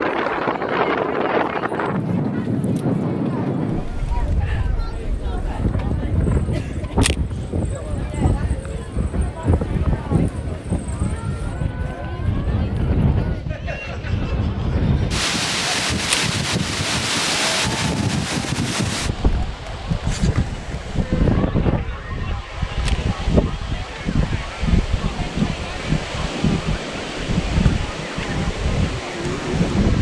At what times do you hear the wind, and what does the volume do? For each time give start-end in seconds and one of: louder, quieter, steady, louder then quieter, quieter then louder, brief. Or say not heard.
0.0-29.9 steady.